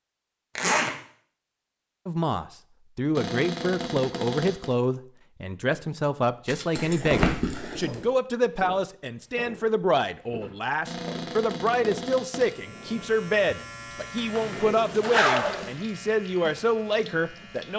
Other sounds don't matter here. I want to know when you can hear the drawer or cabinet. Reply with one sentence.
The drawer or cabinet can be heard from 3.1 to 4.8 s and from 10.8 to 12.6 s.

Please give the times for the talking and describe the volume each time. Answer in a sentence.
The talking can be heard from 2.0 to 17.7 s, at a steady volume.